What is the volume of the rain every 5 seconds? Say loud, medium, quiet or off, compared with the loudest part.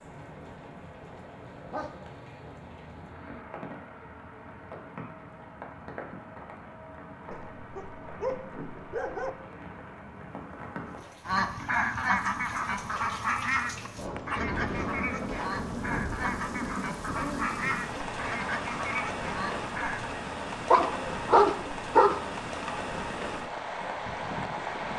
medium, medium, medium, loud, loud.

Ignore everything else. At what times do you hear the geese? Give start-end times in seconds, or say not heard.
11.2-20.1.